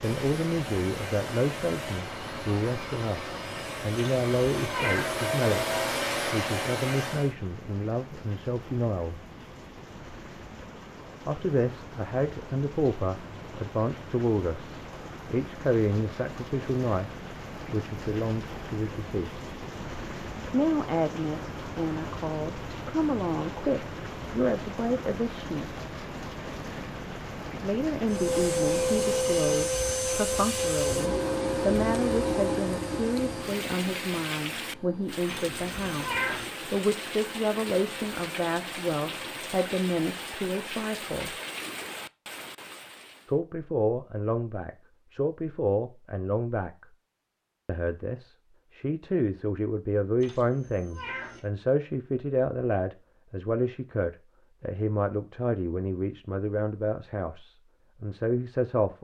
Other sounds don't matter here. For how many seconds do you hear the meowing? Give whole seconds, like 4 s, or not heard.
4 s.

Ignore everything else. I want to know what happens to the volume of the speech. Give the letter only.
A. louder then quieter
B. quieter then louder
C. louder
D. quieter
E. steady
E.